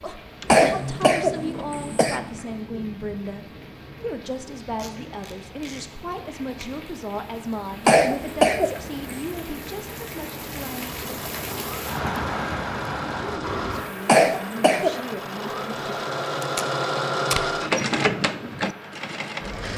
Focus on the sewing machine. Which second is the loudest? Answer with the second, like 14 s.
18 s.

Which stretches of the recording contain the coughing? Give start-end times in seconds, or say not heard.
0.5-2.2, 7.8-9.2, 14.1-14.9.